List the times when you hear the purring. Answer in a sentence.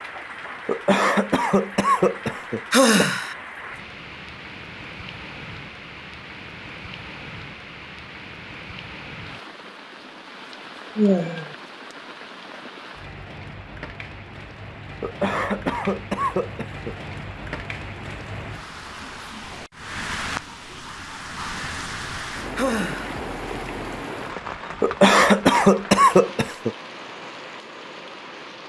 You can't hear the purring here.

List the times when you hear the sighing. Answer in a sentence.
The sighing can be heard from 2.7 to 3.4 s, from 10.9 to 11.6 s and from 22.6 to 23.2 s.